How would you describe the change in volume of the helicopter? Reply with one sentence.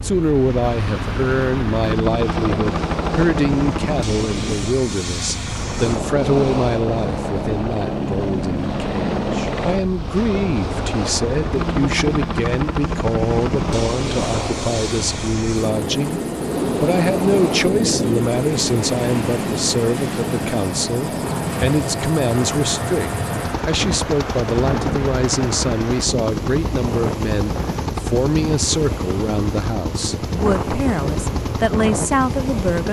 The volume of the helicopter stays about the same.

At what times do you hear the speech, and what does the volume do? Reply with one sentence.
You can hear the speech from 0.0 to 32.8 s, at a steady volume.